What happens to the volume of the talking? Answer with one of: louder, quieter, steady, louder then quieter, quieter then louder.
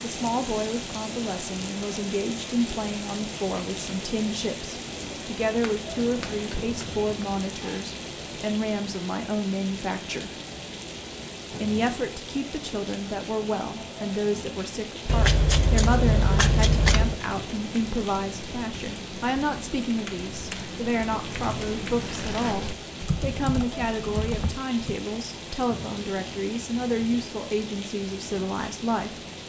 steady.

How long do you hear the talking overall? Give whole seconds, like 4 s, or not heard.
28 s.